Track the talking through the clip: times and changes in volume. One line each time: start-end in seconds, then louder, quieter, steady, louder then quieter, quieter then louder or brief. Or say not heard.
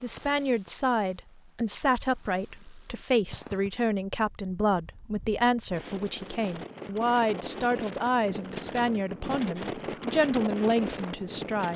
0.0-11.7 steady.